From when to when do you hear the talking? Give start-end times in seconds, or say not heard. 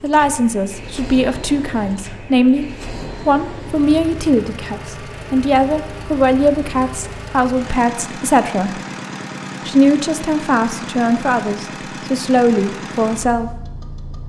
0.0-2.6, 3.2-8.8, 9.7-13.6.